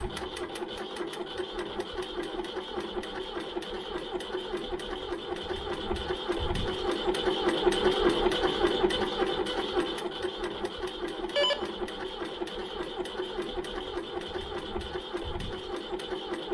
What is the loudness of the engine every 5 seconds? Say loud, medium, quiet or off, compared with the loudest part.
medium, loud, medium, medium.